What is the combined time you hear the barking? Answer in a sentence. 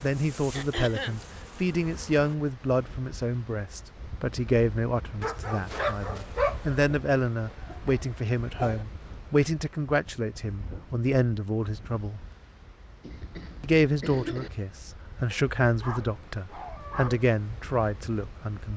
The barking can be heard for 4 seconds in total.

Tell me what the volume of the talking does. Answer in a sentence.
The loudness of the talking stays about the same.